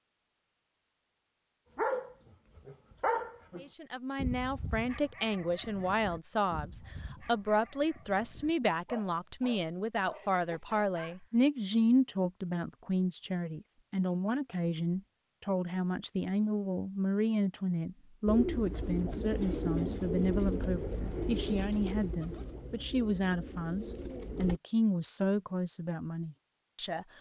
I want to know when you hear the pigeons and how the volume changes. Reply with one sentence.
You can hear the pigeons from 18.2 to 24.6 s, getting quieter.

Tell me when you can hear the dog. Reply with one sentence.
The dog can be heard from 1.8 to 11.2 s.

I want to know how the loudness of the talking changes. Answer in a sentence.
The volume of the talking stays about the same.